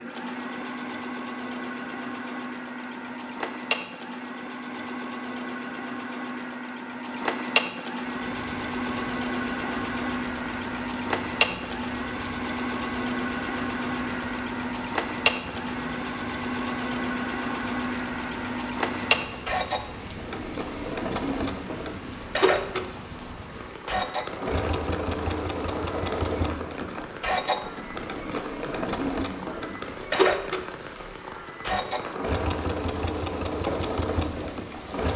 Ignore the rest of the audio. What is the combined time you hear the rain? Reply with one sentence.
The rain can be heard for 27 seconds in total.